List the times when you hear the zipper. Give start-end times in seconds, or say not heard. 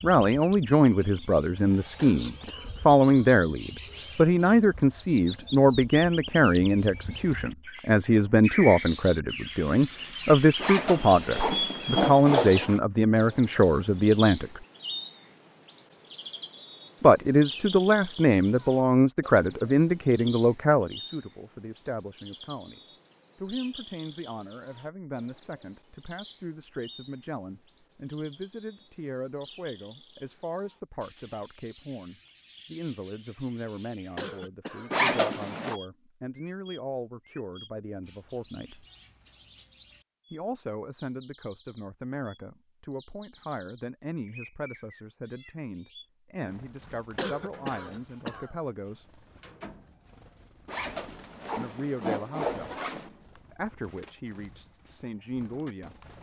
10.6-12.8, 34.9-35.8, 50.6-53.1.